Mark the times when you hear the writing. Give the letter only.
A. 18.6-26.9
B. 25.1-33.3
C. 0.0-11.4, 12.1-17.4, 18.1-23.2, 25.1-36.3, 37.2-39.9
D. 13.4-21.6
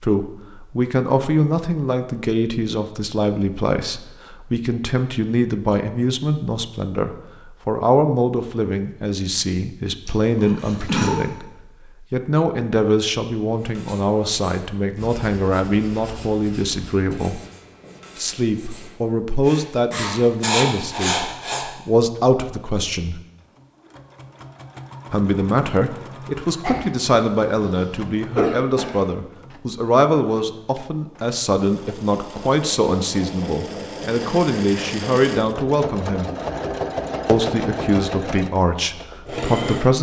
D.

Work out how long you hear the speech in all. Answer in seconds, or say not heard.
36 s.